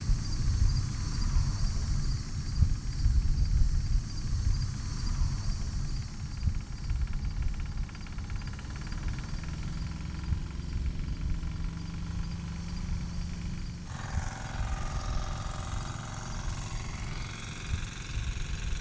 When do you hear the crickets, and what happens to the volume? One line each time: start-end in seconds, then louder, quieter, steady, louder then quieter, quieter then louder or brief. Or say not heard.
0.0-18.7 quieter.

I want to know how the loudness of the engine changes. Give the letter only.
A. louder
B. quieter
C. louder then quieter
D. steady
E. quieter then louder
A.